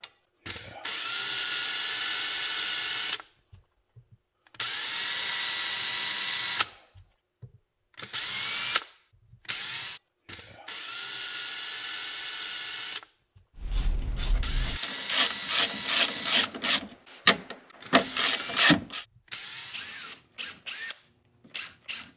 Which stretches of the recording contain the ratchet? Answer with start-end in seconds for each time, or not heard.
13.6-19.1.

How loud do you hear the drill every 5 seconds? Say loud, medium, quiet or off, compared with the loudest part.
loud, loud, medium, medium, medium.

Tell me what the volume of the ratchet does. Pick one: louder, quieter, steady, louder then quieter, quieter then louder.
louder.